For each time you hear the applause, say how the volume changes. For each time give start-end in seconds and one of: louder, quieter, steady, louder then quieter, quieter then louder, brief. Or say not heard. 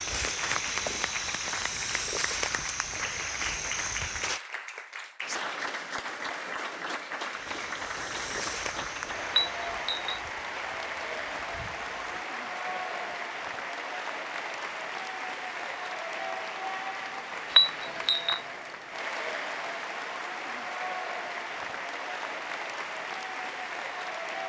0.0-24.4 steady.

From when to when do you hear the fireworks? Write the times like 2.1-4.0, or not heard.
not heard.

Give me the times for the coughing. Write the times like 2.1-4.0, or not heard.
not heard.